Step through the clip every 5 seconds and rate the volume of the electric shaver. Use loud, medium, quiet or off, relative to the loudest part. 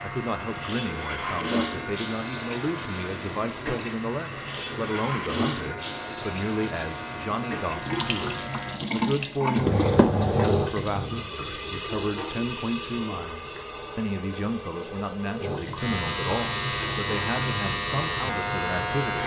medium, medium, off, loud.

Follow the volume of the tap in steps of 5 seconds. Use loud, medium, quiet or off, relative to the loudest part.
loud, loud, loud, medium.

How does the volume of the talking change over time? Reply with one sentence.
The volume of the talking stays about the same.